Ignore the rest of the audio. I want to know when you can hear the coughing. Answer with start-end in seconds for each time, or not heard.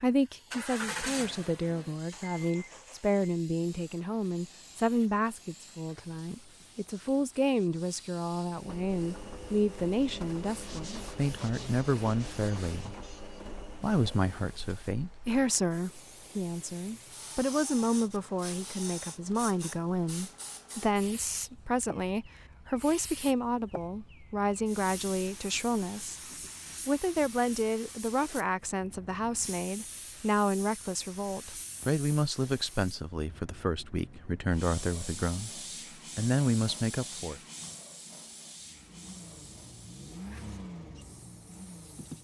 not heard.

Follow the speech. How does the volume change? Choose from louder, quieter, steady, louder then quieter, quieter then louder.
steady.